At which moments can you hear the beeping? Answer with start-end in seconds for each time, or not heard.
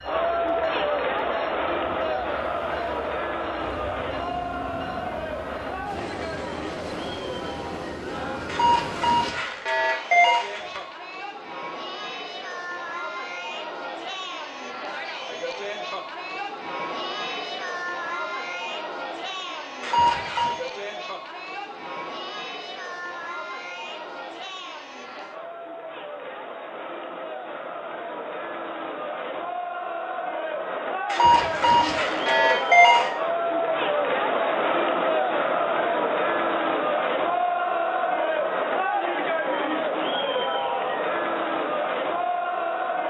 8.4-10.8, 19.8-20.6, 31.1-33.1.